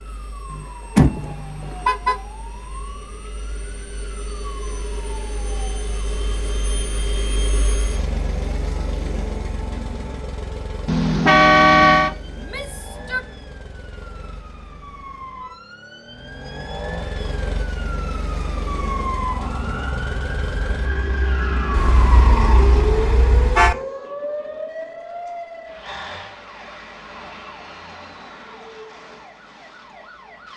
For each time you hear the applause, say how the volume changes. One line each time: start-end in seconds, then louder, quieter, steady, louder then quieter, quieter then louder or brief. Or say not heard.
not heard.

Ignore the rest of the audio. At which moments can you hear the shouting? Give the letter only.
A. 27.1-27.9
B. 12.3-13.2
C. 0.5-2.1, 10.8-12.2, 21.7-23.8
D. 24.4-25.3
B.